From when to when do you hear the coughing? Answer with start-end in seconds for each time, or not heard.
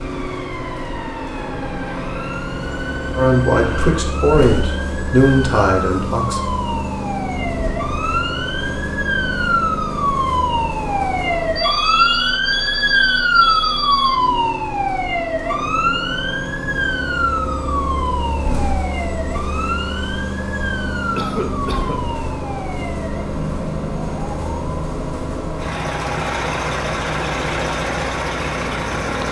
21.1-22.0.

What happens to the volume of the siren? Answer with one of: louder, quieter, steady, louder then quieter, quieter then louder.
louder then quieter.